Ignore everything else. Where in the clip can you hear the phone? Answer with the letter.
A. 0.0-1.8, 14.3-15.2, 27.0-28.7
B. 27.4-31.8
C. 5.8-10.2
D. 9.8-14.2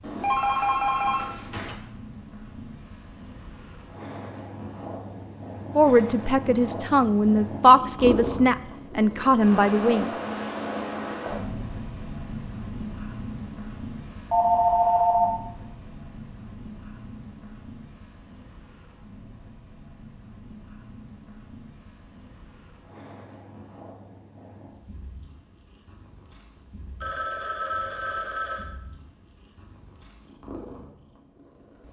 A.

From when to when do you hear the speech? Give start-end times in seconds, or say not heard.
5.8-10.2.